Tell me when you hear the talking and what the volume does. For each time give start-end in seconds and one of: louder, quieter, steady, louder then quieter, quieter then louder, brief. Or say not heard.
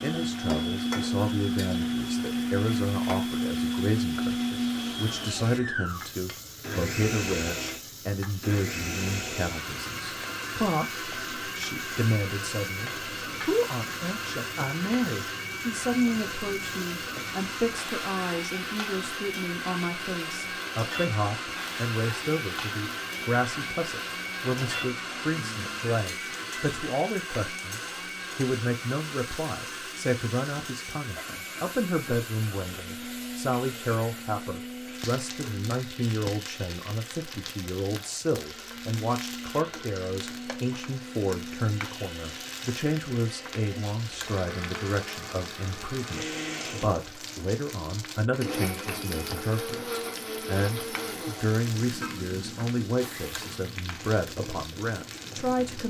0.0-55.8 steady.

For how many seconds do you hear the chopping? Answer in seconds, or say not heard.
not heard.